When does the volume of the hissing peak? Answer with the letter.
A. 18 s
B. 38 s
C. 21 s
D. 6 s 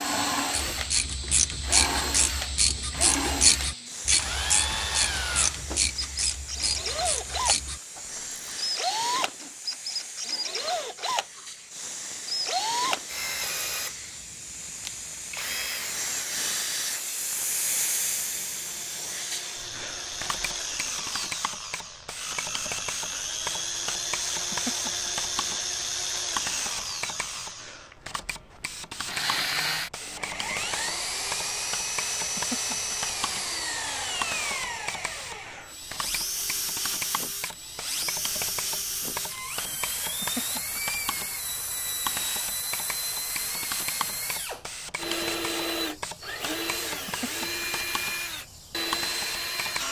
A.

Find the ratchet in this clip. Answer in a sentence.
You can hear the ratchet from 0.5 to 8.6 s.